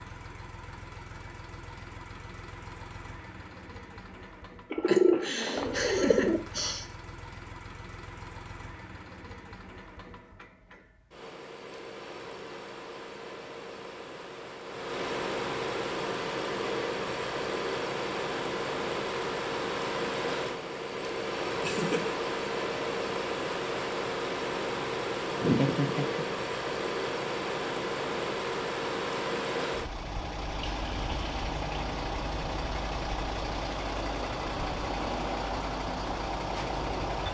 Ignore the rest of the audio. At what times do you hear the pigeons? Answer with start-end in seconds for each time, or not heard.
4.7-6.4.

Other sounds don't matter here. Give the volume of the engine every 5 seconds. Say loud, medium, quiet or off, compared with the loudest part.
quiet, quiet, medium, loud, loud, loud, loud, loud.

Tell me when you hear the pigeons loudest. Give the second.
5 s.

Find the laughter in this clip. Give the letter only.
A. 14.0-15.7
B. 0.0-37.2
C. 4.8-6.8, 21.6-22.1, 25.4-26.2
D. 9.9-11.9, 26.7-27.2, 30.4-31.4
C.